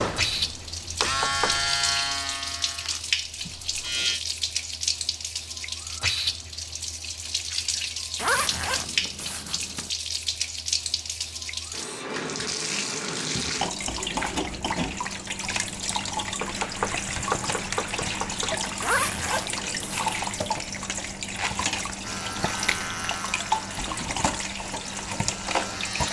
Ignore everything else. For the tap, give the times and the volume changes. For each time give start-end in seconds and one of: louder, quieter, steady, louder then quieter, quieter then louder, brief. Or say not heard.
0.0-26.0 steady.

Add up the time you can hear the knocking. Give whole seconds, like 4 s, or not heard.
3 s.